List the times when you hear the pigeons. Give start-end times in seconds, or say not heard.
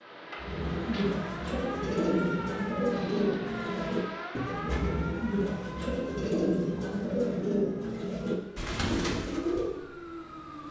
0.4-9.8.